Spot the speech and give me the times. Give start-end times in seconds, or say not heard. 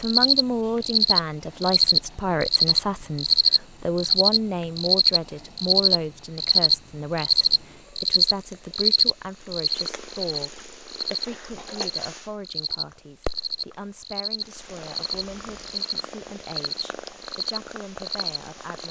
0.0-18.8.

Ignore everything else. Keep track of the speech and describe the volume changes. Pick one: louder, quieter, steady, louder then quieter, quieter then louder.
quieter.